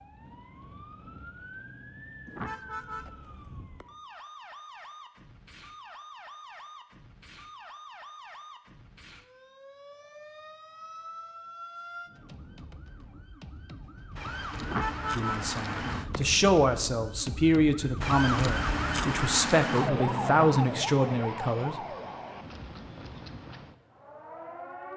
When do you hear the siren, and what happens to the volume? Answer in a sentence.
You can hear the siren from 0.0 to 24.9 s, getting louder.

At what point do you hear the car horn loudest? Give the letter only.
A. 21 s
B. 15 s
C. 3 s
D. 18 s
B.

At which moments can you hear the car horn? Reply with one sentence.
The car horn can be heard from 2.2 to 3.9 s and from 14.6 to 16.4 s.